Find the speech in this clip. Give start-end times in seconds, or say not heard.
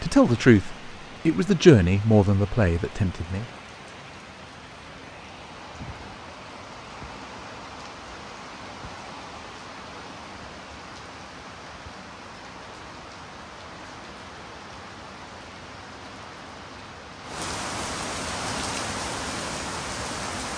0.0-3.5.